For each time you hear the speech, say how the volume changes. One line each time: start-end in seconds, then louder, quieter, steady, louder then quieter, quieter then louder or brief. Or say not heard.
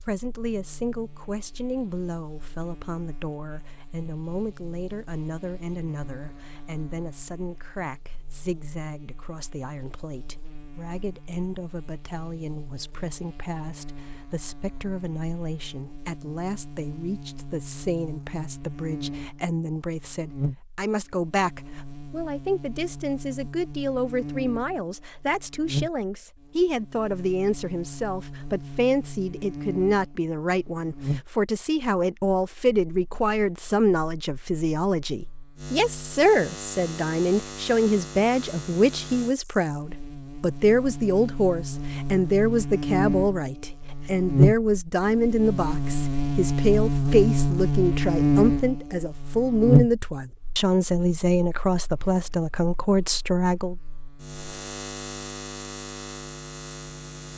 0.0-53.8 louder.